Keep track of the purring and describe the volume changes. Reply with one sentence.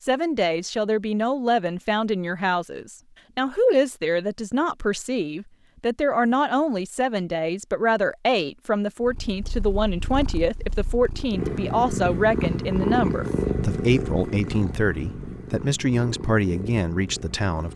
The volume of the purring goes up, then down.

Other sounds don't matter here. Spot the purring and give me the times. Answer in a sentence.
You can hear the purring from 9.0 to 17.7 s.